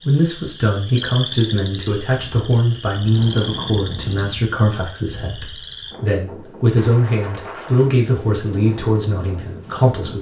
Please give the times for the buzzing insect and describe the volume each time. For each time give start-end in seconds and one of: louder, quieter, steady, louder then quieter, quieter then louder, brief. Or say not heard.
not heard.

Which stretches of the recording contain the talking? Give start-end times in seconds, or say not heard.
0.0-10.1.